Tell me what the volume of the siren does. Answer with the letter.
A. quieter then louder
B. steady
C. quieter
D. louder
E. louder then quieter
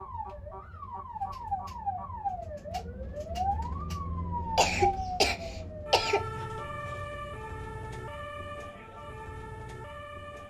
C.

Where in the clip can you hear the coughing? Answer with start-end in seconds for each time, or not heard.
4.5-6.2.